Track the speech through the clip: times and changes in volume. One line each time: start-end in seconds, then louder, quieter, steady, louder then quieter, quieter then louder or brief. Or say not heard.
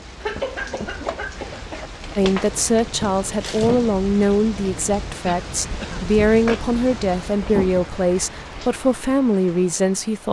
2.1-10.2 steady.